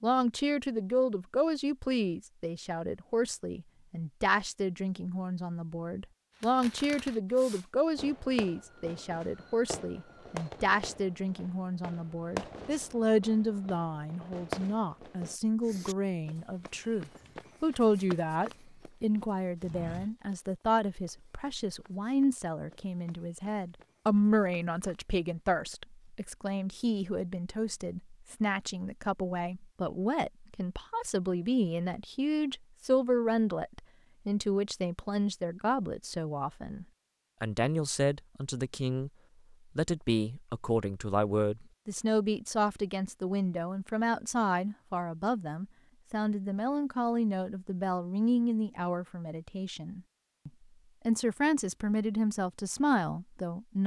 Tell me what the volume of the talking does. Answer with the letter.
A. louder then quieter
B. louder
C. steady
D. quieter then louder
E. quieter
C.